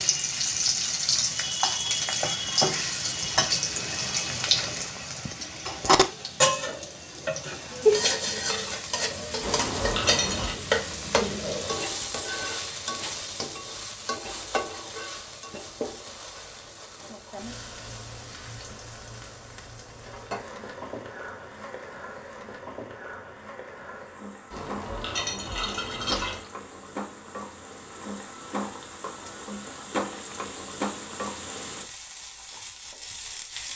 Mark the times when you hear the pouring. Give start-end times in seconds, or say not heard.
9.4-10.6, 24.5-26.4.